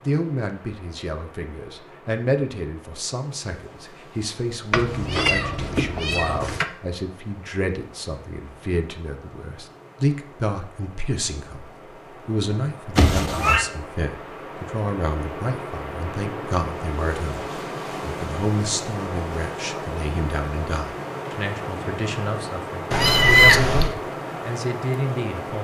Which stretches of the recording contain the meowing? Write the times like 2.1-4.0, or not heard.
4.7-6.7, 12.9-13.7, 22.9-23.9.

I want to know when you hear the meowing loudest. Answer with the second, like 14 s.
23 s.